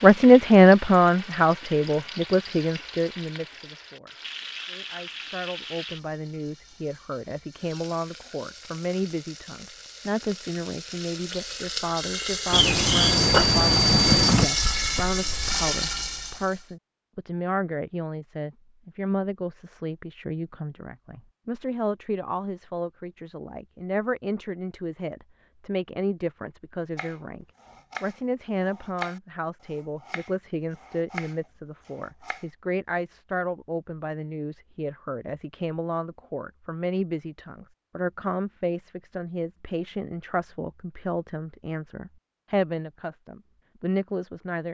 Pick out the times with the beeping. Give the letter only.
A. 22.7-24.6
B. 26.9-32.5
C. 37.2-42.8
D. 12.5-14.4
D.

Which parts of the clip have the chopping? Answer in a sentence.
You can hear the chopping from 26.9 to 32.5 s.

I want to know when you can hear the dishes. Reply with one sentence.
The dishes can't be heard in this clip.